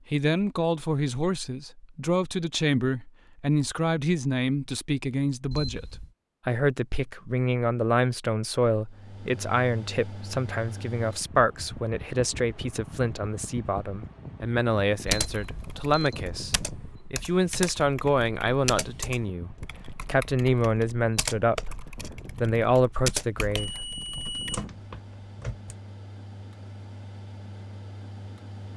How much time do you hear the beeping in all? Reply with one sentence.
The beeping can be heard for 4 seconds in total.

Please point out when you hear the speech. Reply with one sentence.
You can hear the speech from 0.1 to 23.8 s.